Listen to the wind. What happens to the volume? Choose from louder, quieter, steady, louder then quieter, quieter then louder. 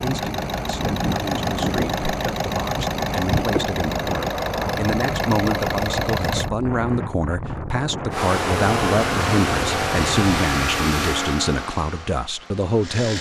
steady.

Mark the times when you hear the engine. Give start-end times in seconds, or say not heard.
0.0-6.5, 8.1-13.1.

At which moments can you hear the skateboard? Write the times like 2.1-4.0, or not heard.
not heard.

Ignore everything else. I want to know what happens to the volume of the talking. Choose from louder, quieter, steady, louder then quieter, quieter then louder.
louder.